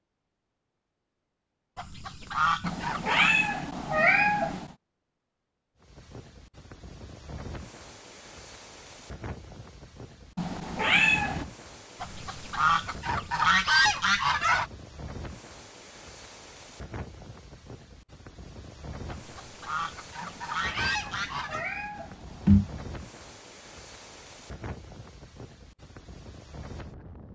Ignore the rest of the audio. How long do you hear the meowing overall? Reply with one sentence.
The meowing can be heard for 6 seconds in total.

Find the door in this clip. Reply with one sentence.
The door can't be heard in this clip.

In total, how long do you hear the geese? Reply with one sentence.
You can hear the geese for 7 seconds altogether.